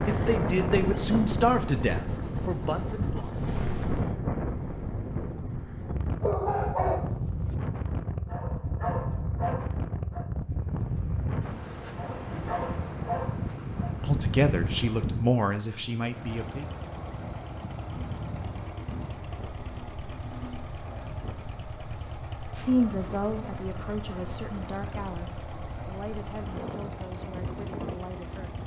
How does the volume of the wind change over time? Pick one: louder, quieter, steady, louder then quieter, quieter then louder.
quieter.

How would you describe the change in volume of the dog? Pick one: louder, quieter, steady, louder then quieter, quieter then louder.
quieter then louder.